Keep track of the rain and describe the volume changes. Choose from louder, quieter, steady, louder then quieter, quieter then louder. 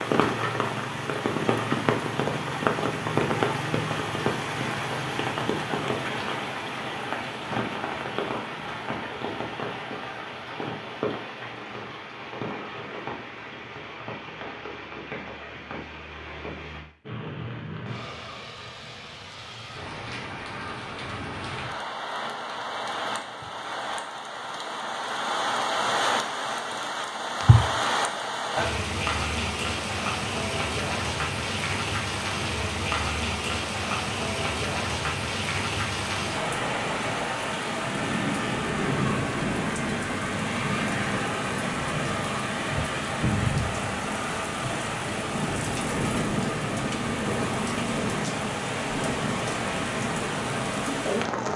quieter then louder.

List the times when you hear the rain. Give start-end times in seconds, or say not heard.
0.0-51.5.